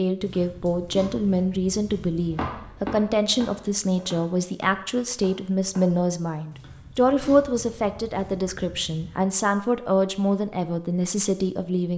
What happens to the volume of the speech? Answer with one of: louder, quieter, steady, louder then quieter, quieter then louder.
steady.